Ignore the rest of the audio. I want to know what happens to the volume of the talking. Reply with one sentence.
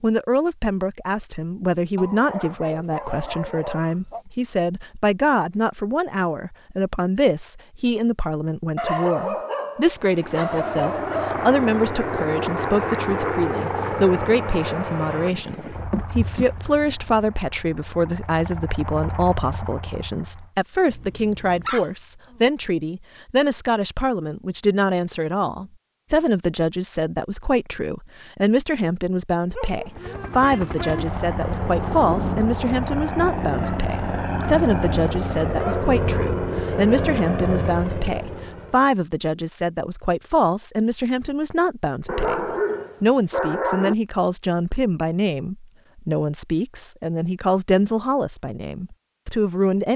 The loudness of the talking stays about the same.